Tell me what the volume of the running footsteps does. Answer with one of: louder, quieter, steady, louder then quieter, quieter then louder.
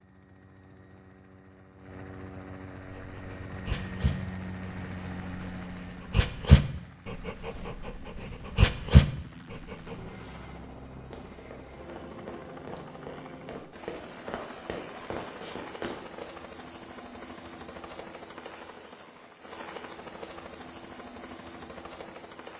louder.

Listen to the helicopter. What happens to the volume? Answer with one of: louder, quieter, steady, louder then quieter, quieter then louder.
steady.